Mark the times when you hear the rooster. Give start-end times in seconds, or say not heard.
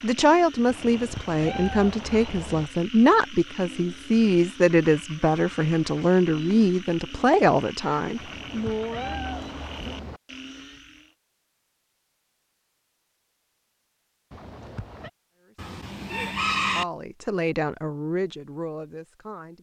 15.6-16.9.